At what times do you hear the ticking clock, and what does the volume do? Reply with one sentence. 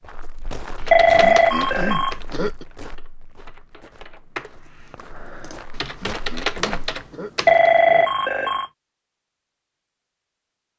You can't hear the ticking clock here.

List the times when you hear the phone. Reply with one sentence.
You can hear the phone from 0.9 to 2.5 s and from 7.5 to 8.7 s.